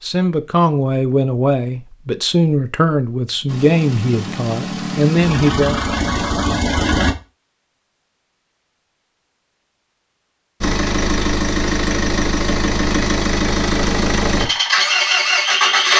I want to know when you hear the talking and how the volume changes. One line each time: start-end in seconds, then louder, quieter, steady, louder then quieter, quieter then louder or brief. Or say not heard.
0.0-5.8 steady.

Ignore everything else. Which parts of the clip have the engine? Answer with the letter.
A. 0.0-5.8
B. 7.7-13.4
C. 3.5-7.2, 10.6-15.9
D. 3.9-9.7
C.